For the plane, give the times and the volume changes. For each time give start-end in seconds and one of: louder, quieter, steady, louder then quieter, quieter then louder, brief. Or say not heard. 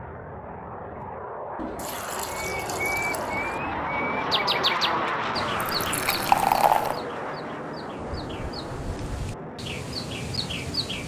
0.0-11.0 louder then quieter.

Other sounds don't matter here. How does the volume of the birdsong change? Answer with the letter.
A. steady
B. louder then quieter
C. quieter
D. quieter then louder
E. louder
D.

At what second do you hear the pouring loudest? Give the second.
6 s.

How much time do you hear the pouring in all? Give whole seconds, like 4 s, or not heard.
3 s.